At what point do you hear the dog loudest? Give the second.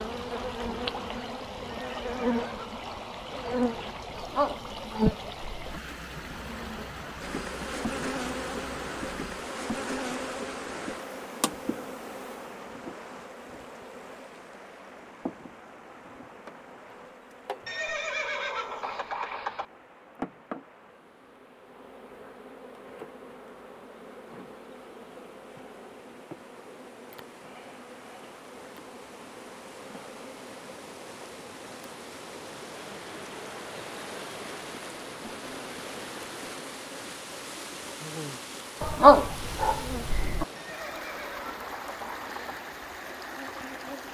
39 s.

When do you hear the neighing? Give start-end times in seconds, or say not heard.
1.8-3.0, 17.6-19.6, 40.5-42.5.